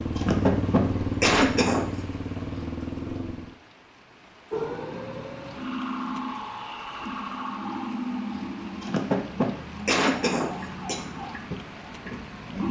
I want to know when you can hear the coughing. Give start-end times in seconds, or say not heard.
0.1-1.9, 8.8-11.0.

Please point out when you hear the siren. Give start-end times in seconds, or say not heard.
4.5-12.6.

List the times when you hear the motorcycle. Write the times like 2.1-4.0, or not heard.
0.0-3.5.